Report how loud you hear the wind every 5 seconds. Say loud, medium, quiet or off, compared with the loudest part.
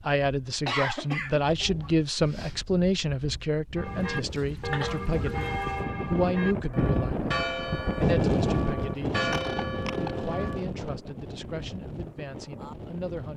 quiet, loud, medium.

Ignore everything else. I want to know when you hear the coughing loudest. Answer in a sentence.
The loudest moment of the coughing is at 1 second.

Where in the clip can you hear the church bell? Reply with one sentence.
The church bell can be heard from 3.8 to 10.6 s.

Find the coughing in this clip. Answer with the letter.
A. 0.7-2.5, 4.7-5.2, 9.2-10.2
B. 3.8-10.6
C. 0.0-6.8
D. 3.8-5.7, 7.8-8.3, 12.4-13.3
A.